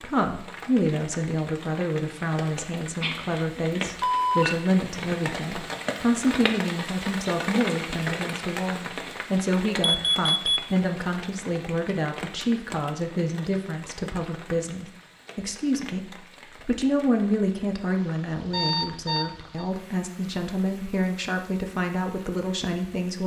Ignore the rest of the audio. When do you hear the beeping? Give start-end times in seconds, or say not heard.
3.0-4.5, 9.8-10.7, 18.5-19.6.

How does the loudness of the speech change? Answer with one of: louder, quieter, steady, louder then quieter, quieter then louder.
steady.